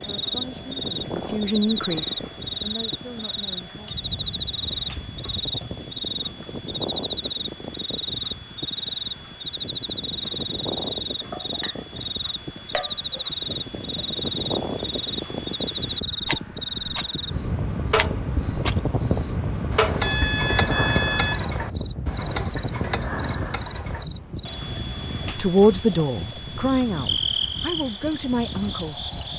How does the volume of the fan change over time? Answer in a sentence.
The loudness of the fan goes up, then down.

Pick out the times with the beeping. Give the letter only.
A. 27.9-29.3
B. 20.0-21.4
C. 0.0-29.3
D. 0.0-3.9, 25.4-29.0
B.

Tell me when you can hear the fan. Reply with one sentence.
You can hear the fan from 0.0 to 29.3 s.